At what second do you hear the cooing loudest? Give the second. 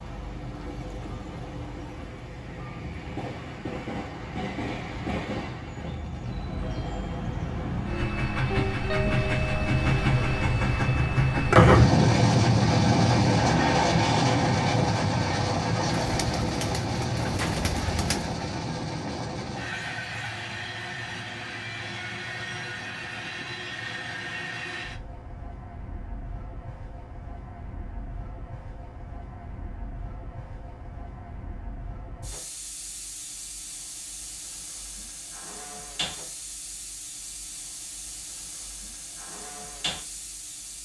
18 s.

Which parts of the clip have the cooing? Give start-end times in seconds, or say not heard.
15.9-18.4.